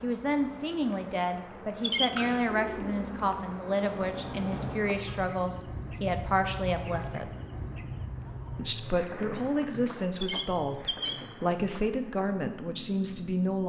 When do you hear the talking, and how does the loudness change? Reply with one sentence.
The talking can be heard from 0.0 to 7.3 s, at a steady volume; and from 8.6 to 13.6 s, at a steady volume.